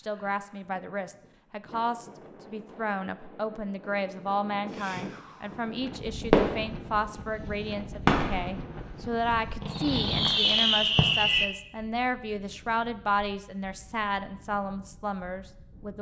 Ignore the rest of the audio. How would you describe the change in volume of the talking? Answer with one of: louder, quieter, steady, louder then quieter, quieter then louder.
steady.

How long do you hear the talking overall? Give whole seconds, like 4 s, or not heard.
16 s.